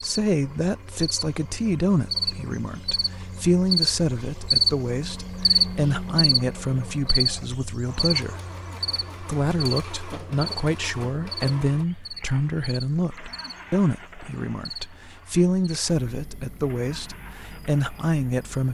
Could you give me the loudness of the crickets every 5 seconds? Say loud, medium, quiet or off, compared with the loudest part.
loud, loud, quiet, quiet.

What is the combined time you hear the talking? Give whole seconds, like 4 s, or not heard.
18 s.